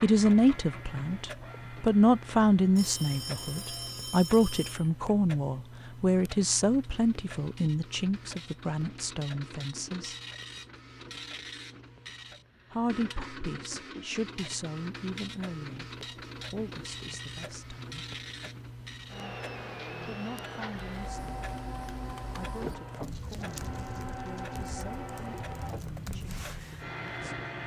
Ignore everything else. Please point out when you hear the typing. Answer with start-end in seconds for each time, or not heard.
21.0-26.9.